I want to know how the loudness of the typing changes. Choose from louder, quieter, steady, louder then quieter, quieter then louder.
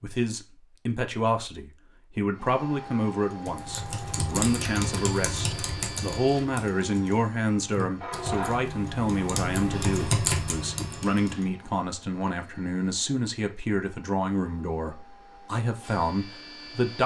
quieter then louder.